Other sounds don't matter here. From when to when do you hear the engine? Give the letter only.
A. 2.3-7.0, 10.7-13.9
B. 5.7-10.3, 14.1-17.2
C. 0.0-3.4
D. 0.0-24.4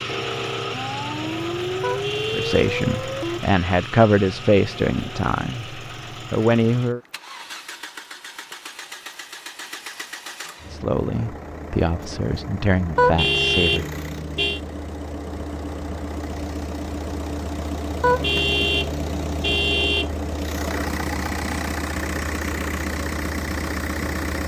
D.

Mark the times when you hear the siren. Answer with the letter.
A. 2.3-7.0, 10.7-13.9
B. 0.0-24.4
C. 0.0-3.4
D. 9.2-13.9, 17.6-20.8
C.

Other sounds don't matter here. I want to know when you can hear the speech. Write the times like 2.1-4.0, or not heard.
2.3-7.0, 10.7-13.9.